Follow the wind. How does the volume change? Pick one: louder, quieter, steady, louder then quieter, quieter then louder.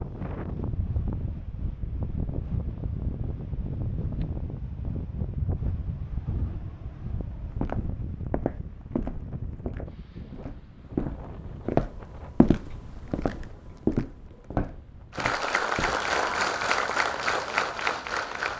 quieter.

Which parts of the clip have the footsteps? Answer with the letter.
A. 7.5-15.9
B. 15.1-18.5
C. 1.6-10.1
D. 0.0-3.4
A.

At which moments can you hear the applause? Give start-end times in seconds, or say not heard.
15.1-18.5.